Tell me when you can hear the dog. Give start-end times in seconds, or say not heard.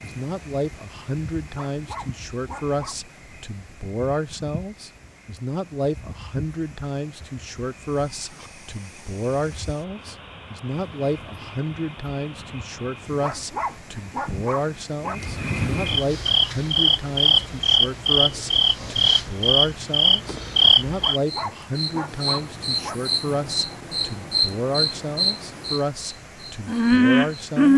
1.4-3.0, 13.1-15.2, 20.9-22.9.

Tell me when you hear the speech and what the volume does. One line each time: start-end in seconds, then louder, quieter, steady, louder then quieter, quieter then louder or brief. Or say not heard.
0.0-27.7 steady.